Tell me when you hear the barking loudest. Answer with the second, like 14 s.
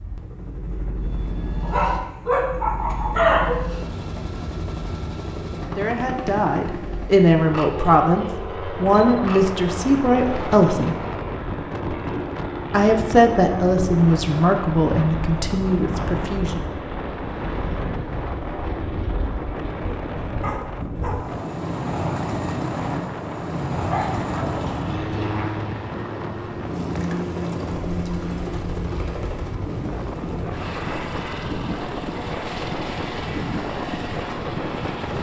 3 s.